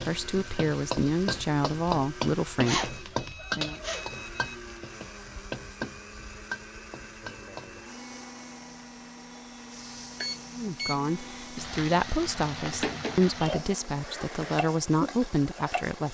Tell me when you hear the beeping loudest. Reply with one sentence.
The loudest moment of the beeping is at 3 seconds.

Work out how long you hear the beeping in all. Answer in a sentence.
You can hear the beeping for 3 seconds altogether.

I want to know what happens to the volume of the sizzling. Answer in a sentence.
The loudness of the sizzling goes down, then up.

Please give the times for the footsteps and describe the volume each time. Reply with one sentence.
You can't hear the footsteps here.